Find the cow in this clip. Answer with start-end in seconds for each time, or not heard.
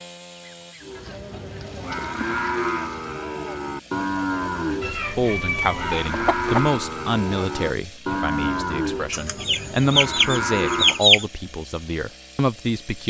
0.8-11.1.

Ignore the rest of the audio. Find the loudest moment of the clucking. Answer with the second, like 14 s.
11 s.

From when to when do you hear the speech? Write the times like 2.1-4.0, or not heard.
5.0-13.0.